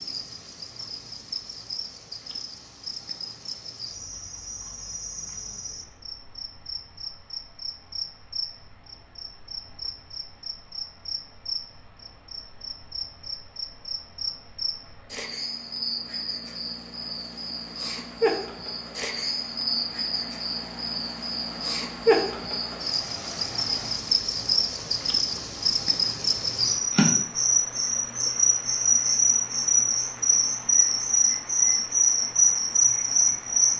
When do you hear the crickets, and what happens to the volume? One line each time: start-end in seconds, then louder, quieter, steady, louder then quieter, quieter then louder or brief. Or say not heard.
0.0-33.7 louder.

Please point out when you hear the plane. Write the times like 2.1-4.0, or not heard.
not heard.